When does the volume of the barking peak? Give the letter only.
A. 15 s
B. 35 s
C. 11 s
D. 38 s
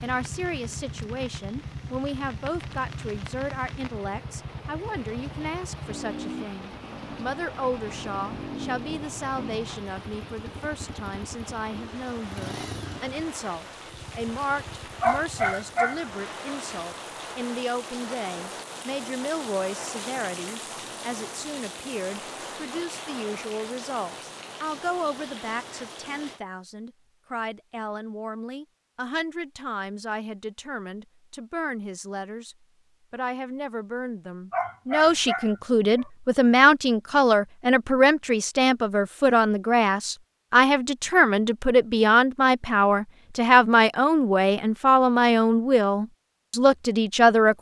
A.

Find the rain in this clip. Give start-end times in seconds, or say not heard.
0.0-26.4.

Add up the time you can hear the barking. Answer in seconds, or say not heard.
3 s.